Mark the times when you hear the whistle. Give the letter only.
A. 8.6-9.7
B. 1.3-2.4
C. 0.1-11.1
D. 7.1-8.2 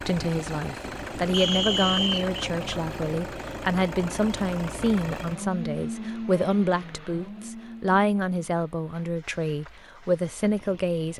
B.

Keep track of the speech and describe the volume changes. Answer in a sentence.
The loudness of the speech stays about the same.